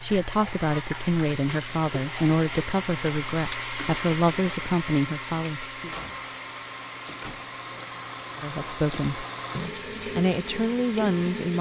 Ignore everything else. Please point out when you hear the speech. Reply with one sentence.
The speech can be heard from 0.0 to 5.9 s and from 8.3 to 11.5 s.